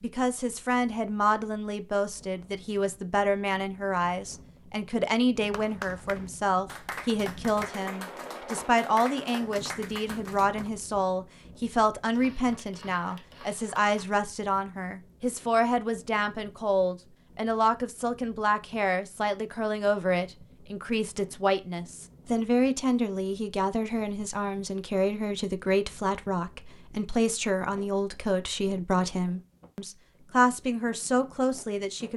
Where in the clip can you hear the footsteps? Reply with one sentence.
You can't hear the footsteps here.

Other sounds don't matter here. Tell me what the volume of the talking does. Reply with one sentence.
The volume of the talking stays about the same.